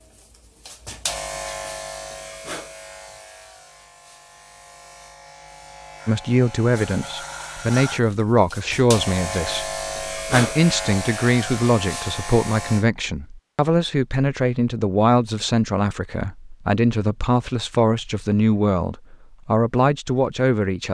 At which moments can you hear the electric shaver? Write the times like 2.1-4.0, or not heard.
0.0-12.8.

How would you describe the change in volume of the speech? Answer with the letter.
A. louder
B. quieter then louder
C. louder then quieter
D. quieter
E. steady
E.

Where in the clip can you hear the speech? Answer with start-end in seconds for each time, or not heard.
6.0-20.8.